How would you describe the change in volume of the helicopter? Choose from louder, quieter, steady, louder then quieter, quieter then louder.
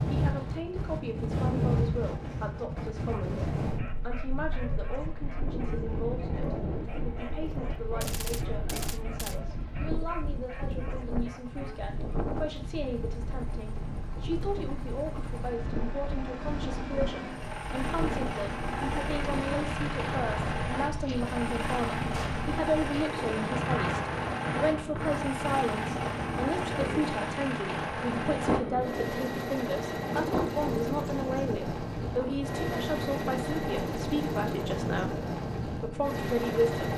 louder.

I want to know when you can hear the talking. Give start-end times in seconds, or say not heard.
0.0-36.9.